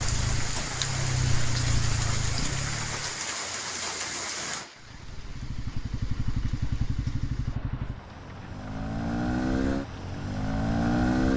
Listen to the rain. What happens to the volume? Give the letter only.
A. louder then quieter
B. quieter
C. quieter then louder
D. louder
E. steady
B.